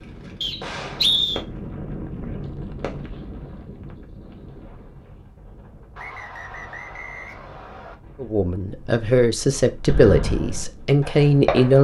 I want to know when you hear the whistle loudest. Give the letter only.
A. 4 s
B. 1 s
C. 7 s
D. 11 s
B.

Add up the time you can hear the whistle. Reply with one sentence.
The whistle can be heard for 3 seconds in total.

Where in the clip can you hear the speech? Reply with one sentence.
The speech can be heard from 8.2 to 11.7 s.